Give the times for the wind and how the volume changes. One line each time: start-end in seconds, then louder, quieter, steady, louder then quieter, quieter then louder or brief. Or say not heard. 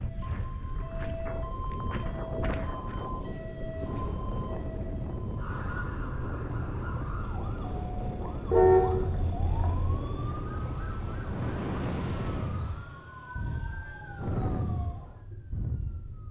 0.0-16.2 steady.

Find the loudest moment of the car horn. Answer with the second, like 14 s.
9 s.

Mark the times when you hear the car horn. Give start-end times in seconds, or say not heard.
8.5-10.0.